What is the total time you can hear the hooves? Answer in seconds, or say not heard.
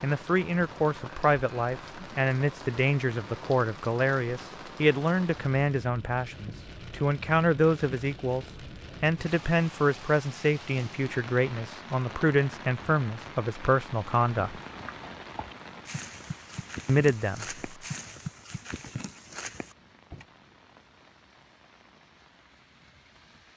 6 s.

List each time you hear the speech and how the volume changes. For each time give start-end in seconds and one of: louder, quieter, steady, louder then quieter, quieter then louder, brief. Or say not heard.
0.0-14.6 steady
16.9-17.4 brief.